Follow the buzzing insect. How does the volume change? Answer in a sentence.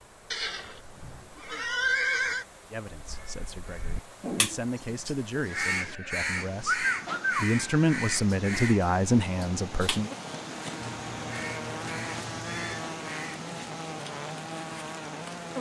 The volume of the buzzing insect stays about the same.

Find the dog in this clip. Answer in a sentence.
The dog can't be heard in this clip.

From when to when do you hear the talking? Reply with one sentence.
You can hear the talking from 2.7 to 10.1 s.